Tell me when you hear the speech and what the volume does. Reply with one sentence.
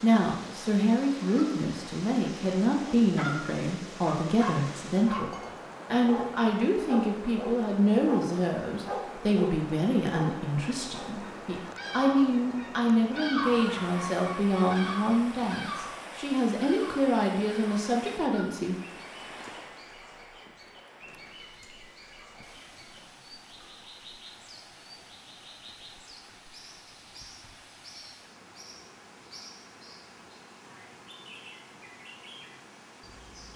You can hear the speech from 0.0 to 18.8 s, at a steady volume.